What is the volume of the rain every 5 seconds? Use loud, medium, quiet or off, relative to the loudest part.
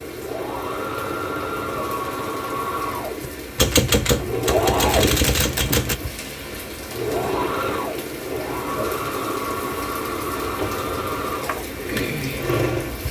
medium, loud, loud.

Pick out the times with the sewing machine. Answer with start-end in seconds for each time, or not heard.
0.0-13.0.